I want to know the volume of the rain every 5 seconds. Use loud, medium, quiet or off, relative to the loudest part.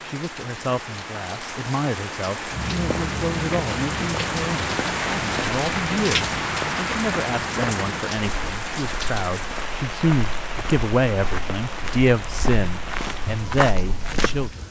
loud, loud, medium.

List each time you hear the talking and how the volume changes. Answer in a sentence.
You can hear the talking from 0.0 to 14.6 s, getting louder.